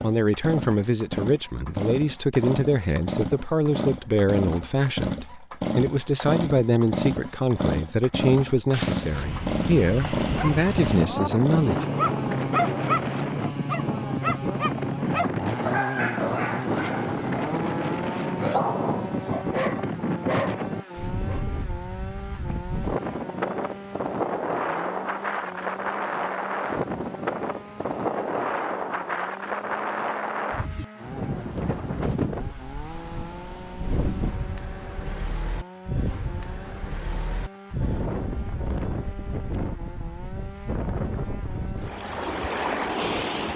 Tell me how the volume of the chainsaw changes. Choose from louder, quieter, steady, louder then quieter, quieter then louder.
quieter.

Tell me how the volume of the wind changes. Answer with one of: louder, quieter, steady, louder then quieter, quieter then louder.
steady.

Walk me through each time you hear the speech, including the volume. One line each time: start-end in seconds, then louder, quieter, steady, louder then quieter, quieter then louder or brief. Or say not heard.
0.0-11.8 steady.